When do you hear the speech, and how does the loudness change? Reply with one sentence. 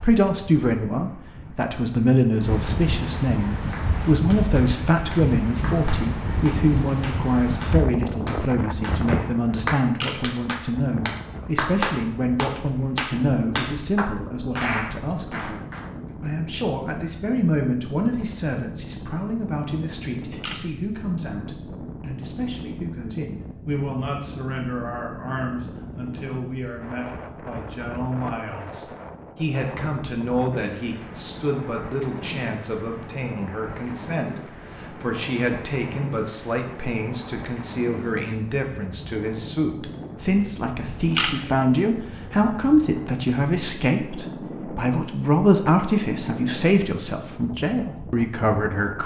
You can hear the speech from 0.0 to 49.0 s, getting quieter then louder.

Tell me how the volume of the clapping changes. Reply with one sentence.
The volume of the clapping goes up.